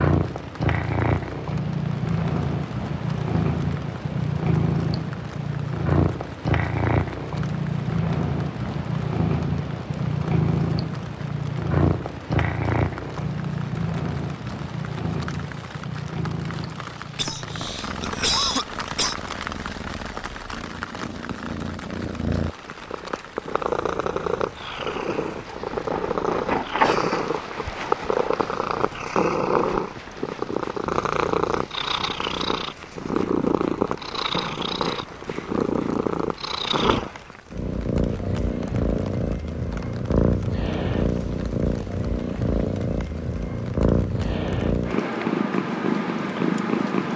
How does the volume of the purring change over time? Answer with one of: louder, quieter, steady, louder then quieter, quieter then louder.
steady.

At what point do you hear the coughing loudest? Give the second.
18 s.